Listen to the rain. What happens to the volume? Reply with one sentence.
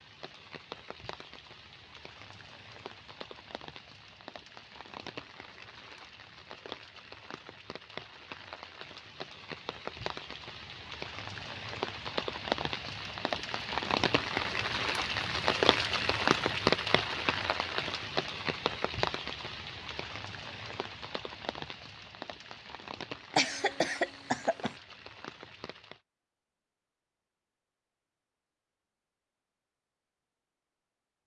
The volume of the rain goes up, then down.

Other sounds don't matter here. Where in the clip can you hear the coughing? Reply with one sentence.
You can hear the coughing from 23.4 to 24.8 s.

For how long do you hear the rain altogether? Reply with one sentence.
You can hear the rain for 26 seconds altogether.